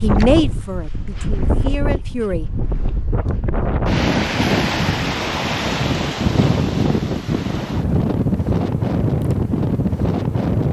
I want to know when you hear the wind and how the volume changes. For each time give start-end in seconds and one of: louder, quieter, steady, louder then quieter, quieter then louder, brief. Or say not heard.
0.0-10.6 louder.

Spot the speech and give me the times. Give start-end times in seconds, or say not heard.
0.0-2.5.